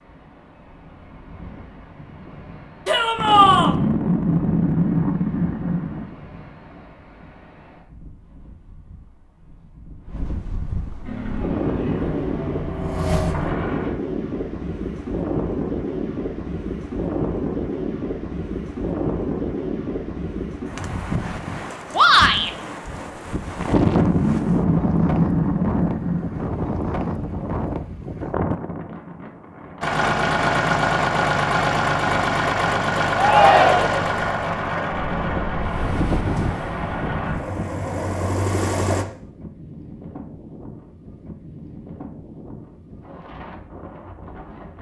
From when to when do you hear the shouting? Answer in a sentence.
You can hear the shouting from 2.9 to 3.8 s, from 21.9 to 22.5 s and from 33.1 to 34.0 s.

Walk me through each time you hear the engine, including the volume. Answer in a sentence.
You can hear the engine briefly from 11.0 to 13.9 s; and from 29.8 to 39.0 s, getting quieter.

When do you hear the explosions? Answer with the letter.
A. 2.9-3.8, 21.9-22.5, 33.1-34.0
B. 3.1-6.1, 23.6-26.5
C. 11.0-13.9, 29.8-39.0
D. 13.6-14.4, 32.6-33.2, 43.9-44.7
B.